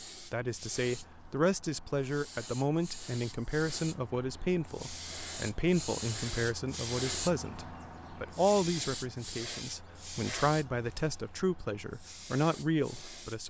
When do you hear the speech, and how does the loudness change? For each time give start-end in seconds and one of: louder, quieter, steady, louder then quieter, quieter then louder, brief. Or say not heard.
0.2-13.4 steady.